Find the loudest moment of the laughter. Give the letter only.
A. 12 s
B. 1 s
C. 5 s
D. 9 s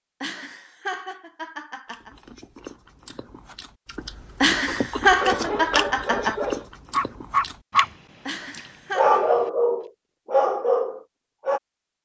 C.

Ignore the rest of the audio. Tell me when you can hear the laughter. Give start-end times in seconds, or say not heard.
0.2-2.1, 4.4-6.3, 8.2-9.3.